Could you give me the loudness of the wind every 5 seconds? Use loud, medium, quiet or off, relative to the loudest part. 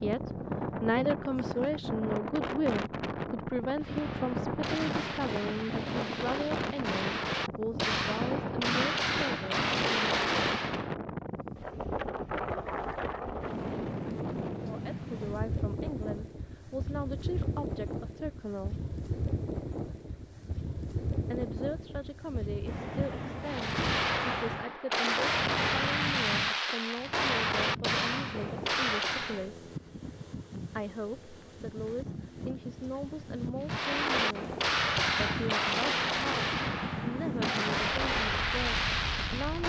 loud, loud, loud, loud, loud, medium, medium, loud.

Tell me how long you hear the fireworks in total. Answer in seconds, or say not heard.
19 s.